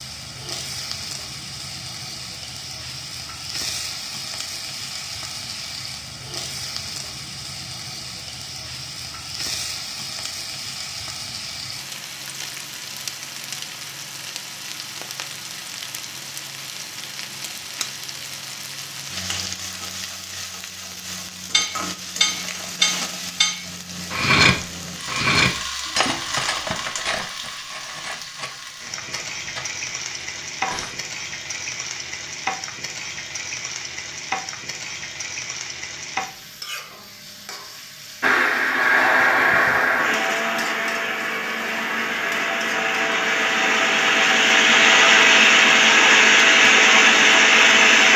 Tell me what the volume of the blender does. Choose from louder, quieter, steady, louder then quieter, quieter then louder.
quieter then louder.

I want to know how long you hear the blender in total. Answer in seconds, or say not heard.
10 s.